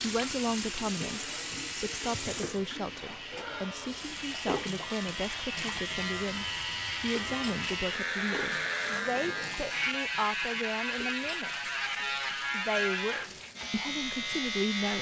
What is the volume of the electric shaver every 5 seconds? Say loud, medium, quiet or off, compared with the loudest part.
medium, loud, loud.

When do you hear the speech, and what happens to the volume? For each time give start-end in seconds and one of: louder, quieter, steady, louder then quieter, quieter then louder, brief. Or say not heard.
0.0-11.7 steady
12.5-14.9 brief.